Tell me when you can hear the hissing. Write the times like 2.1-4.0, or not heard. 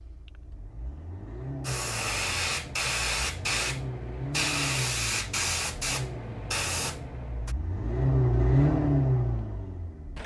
1.6-7.5.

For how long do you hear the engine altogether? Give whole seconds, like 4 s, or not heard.
10 s.